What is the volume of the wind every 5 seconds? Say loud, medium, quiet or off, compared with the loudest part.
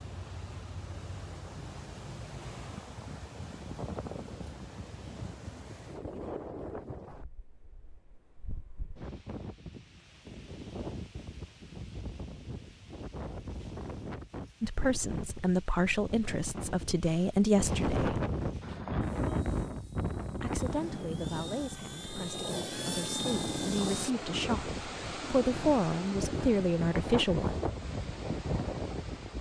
medium, medium, medium, loud, loud, loud.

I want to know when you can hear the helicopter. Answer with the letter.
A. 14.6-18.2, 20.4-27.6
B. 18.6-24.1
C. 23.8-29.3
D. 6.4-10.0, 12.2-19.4
B.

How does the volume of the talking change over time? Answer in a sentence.
The volume of the talking goes down, then up.